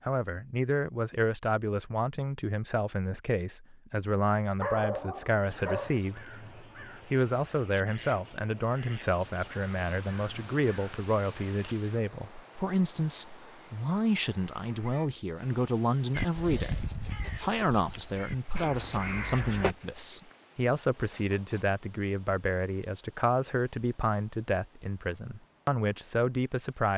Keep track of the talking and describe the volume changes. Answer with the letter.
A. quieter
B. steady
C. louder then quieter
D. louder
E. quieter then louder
B.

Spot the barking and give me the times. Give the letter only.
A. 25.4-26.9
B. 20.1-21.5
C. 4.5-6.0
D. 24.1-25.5
C.